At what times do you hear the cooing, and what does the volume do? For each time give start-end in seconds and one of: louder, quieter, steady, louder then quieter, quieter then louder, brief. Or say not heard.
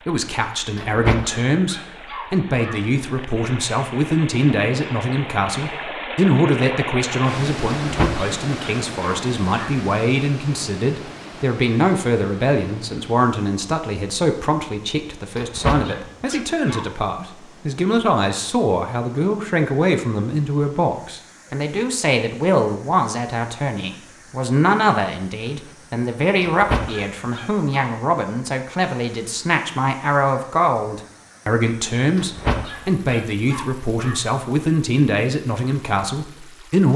not heard.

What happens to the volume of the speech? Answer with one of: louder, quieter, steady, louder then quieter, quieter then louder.
steady.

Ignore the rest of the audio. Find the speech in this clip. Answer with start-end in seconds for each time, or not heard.
0.1-36.9.